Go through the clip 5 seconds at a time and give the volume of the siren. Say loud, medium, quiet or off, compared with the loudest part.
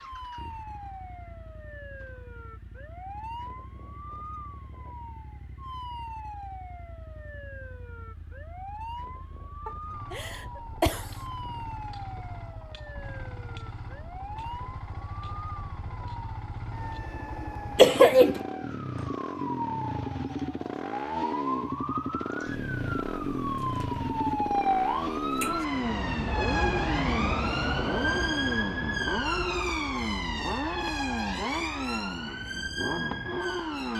quiet, quiet, quiet, medium, loud, loud, medium.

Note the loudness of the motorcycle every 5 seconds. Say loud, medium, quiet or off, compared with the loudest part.
quiet, quiet, quiet, medium, loud, loud, loud.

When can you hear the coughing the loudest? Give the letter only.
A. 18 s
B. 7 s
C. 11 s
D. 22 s
A.